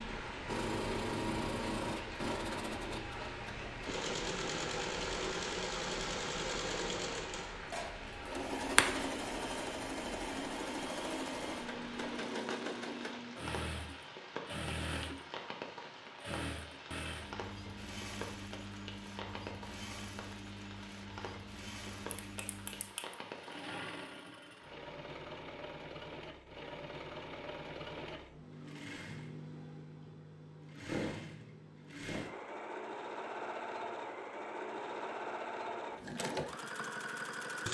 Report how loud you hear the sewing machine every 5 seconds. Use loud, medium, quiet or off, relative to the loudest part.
loud, loud, loud, medium, medium, medium, loud, loud.